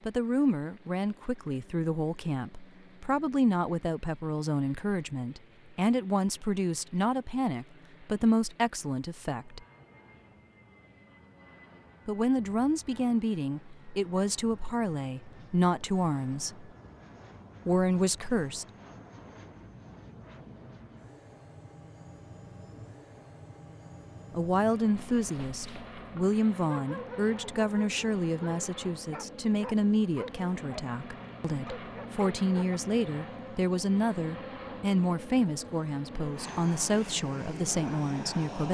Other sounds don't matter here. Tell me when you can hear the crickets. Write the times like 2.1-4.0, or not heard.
not heard.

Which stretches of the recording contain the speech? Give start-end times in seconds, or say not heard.
0.1-9.6, 12.1-16.7, 17.6-18.6, 24.3-38.6.